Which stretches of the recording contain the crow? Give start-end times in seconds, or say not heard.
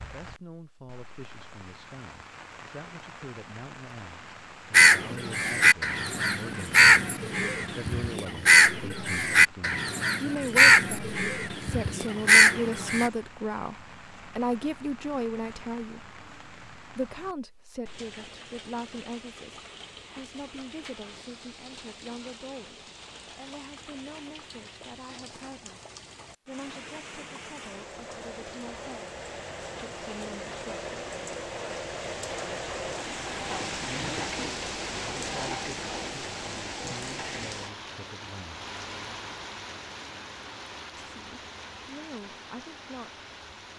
4.7-13.1.